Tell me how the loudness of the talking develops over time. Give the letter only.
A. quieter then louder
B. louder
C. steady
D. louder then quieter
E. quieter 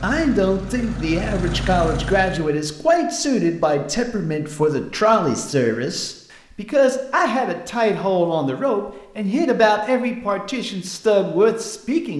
C.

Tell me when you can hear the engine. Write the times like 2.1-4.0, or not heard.
0.0-2.5.